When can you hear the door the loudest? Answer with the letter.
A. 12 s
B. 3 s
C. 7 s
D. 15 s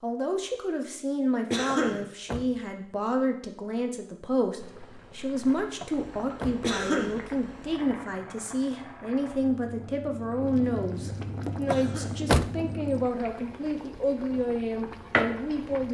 A.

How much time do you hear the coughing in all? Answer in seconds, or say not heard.
2 s.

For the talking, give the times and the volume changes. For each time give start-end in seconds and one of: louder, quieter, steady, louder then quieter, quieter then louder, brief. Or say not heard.
0.0-15.8 steady.